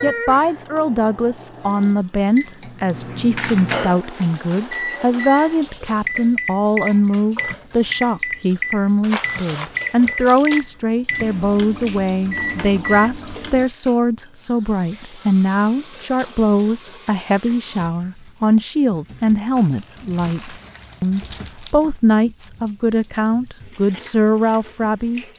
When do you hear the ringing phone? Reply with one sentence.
The ringing phone can't be heard in this clip.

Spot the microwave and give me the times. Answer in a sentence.
You can hear the microwave from 0.0 to 13.7 s.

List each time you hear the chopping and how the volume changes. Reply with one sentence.
You can't hear the chopping here.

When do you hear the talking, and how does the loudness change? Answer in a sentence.
You can hear the talking from 0.0 to 25.2 s, at a steady volume.